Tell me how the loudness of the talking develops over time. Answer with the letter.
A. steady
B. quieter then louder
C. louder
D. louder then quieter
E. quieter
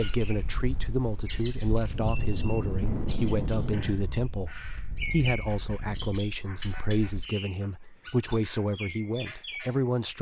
A.